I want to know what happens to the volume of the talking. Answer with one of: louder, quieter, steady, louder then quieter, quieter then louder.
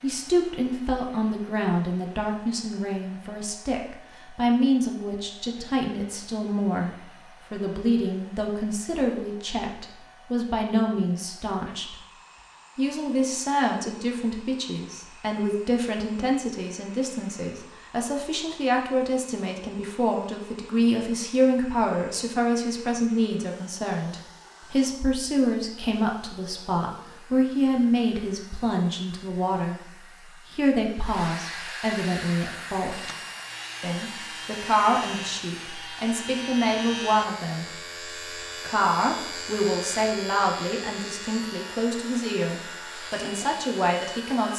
steady.